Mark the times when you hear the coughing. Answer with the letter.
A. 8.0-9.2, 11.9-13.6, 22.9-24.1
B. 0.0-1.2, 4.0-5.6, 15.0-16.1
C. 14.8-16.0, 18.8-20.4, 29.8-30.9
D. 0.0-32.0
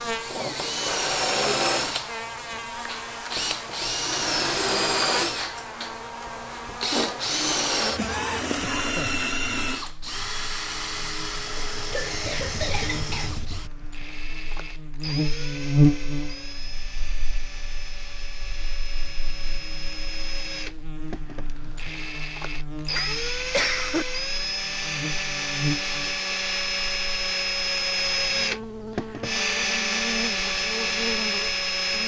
A.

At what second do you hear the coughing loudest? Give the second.
24 s.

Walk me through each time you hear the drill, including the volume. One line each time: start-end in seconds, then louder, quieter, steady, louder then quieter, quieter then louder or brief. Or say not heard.
0.0-32.0 quieter then louder.